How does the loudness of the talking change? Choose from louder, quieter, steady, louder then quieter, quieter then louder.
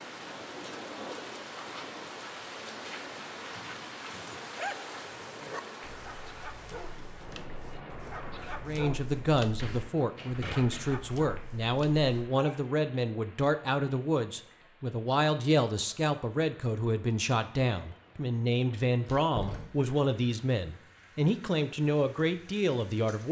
steady.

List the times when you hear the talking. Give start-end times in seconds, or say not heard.
8.7-23.2.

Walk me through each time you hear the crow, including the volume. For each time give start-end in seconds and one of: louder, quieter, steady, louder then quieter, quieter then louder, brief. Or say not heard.
not heard.